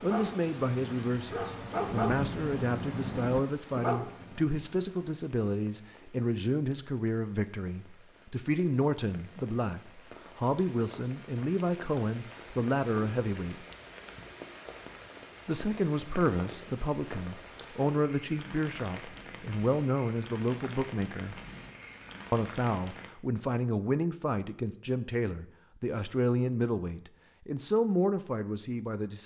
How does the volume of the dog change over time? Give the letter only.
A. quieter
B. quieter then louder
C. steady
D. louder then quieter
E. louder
E.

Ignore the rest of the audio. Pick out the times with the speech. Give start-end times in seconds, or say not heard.
0.0-13.7, 15.4-21.4, 22.3-29.2.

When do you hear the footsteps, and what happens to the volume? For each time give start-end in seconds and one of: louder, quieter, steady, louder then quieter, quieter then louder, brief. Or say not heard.
not heard.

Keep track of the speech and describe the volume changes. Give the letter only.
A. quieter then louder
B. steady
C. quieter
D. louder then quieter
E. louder
B.